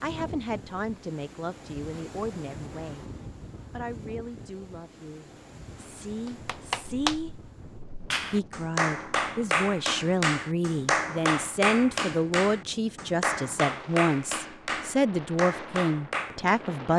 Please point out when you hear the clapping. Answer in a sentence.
The clapping can be heard from 6.2 to 16.6 s.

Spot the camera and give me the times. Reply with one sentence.
The camera can't be heard in this clip.